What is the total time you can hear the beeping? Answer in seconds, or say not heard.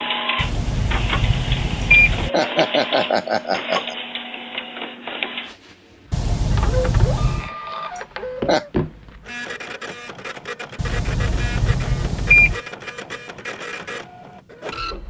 5 s.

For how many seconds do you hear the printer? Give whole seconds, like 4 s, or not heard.
15 s.